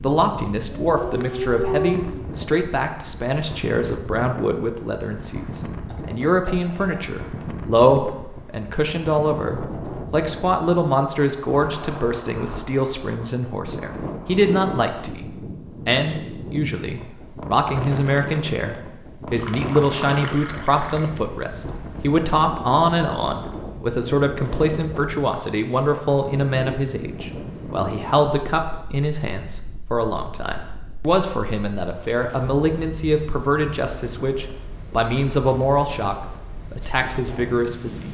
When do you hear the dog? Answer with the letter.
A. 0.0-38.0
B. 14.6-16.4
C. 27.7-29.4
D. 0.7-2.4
D.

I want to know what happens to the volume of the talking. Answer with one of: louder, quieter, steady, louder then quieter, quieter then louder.
steady.